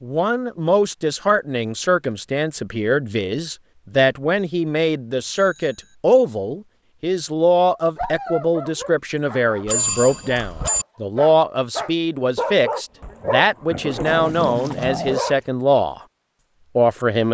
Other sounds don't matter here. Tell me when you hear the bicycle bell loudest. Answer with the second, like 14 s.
10 s.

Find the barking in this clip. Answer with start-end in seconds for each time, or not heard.
8.0-15.4.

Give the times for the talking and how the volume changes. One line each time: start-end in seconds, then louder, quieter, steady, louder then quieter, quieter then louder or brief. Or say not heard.
0.0-16.0 steady
16.8-17.2 brief.